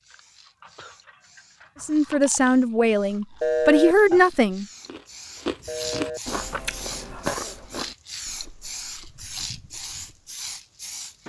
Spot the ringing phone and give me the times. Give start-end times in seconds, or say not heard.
3.4-4.0, 5.7-6.2.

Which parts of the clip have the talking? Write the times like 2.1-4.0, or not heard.
1.8-4.7.